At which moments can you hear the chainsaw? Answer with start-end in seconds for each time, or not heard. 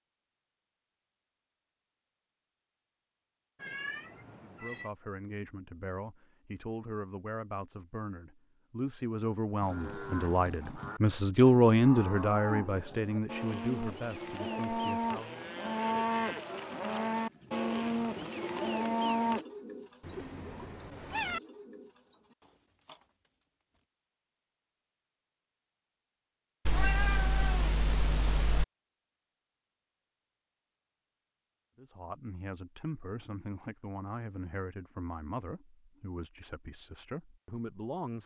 not heard.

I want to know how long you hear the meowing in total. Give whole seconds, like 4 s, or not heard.
5 s.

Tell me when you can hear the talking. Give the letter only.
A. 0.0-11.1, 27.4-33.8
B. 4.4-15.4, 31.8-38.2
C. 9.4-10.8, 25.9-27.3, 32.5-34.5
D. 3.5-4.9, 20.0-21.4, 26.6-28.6
B.